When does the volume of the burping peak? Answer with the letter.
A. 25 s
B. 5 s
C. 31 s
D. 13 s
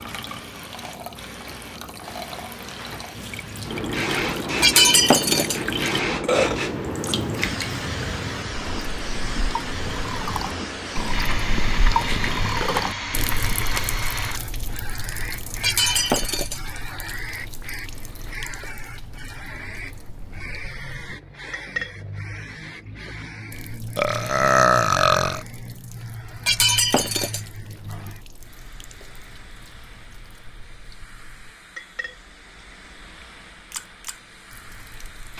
A.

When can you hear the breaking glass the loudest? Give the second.
5 s.